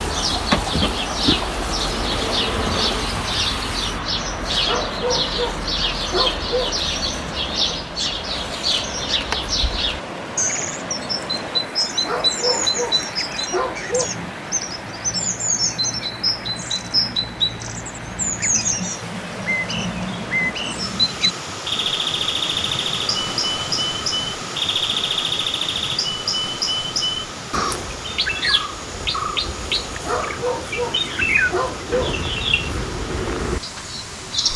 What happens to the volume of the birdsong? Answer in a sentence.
The volume of the birdsong stays about the same.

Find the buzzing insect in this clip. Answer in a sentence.
You can hear the buzzing insect from 0.0 to 3.1 s.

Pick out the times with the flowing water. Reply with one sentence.
You can hear the flowing water from 0.0 to 34.5 s.